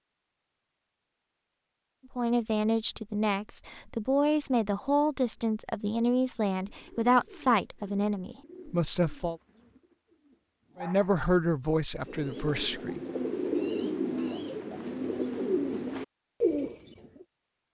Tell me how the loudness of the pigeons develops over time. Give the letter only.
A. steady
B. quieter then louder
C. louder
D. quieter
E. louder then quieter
C.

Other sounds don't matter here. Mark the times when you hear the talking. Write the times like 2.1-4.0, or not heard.
2.1-9.3, 10.8-13.0.